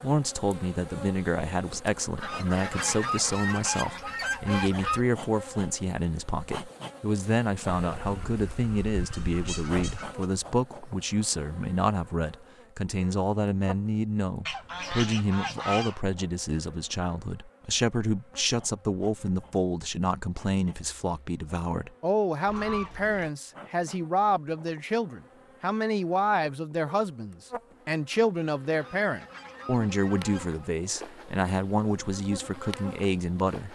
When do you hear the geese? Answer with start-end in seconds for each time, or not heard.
2.1-5.0, 7.8-10.2, 14.4-16.1, 22.4-23.3, 28.7-30.8.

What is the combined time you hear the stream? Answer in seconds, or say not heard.
not heard.